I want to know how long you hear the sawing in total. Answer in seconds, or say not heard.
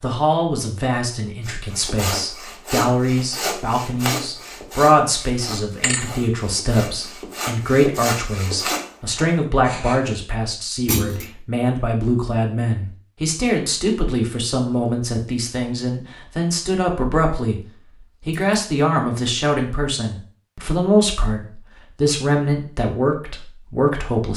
9 s.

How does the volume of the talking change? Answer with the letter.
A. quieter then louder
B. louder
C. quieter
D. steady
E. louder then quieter
D.